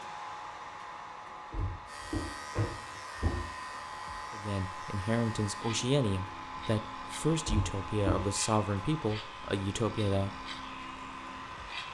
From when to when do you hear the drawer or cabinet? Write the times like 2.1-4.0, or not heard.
1.5-3.5, 7.5-8.3.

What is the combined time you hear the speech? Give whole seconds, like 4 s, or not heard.
6 s.